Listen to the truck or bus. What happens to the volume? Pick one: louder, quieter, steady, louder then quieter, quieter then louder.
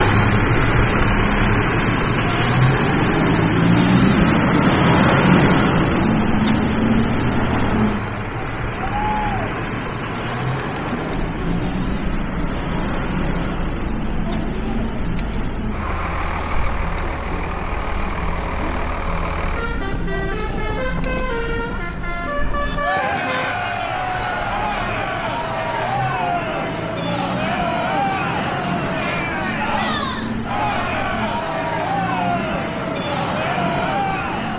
quieter.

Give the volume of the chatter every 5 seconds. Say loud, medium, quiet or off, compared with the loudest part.
off, medium, medium, medium, loud, loud, loud.